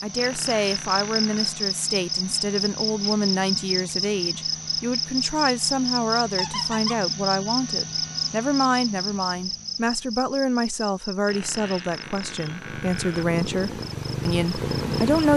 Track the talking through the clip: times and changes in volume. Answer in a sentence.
The talking can be heard from 0.0 to 15.3 s, at a steady volume.